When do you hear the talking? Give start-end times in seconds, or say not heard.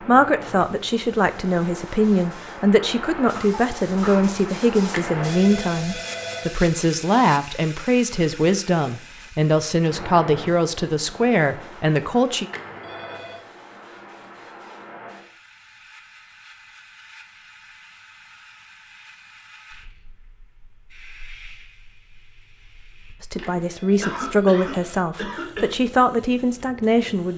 0.1-12.4, 23.2-27.3.